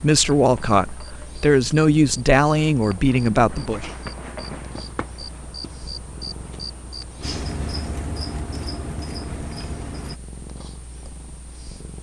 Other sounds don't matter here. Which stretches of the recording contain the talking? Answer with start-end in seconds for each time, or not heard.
0.0-3.9.